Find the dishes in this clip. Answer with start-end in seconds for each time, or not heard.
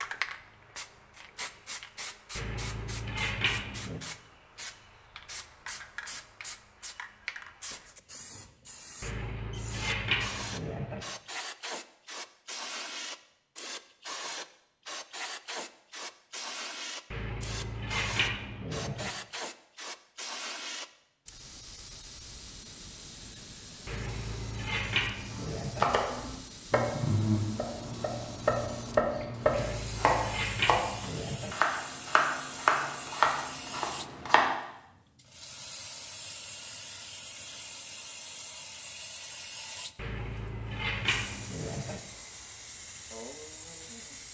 2.4-4.0, 9.0-11.1, 17.1-19.1, 23.9-25.9, 29.5-31.6, 40.0-42.0.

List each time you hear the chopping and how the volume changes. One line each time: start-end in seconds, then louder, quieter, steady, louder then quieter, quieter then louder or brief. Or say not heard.
25.3-34.5 steady.